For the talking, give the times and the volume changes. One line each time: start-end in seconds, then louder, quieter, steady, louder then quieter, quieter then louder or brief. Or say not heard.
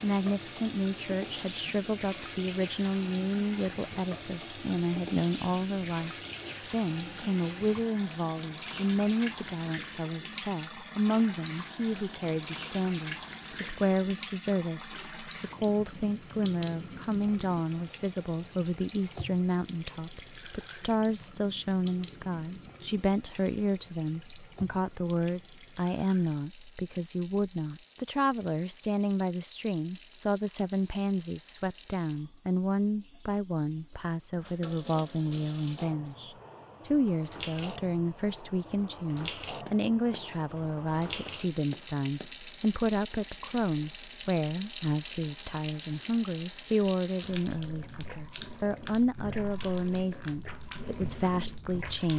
0.0-52.1 steady.